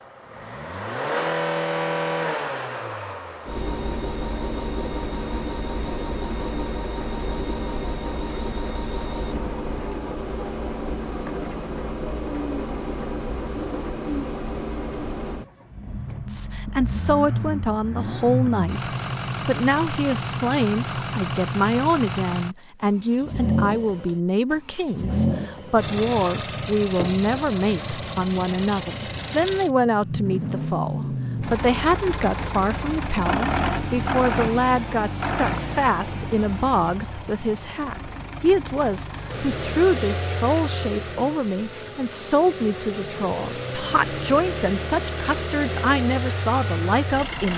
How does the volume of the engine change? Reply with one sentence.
The loudness of the engine stays about the same.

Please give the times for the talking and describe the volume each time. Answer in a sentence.
The talking can be heard from 16.2 to 47.5 s, at a steady volume.